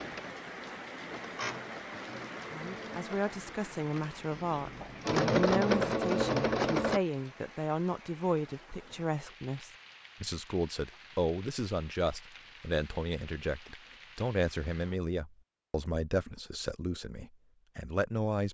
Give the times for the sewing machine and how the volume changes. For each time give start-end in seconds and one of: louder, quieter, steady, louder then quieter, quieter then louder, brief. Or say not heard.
0.0-7.0 quieter then louder.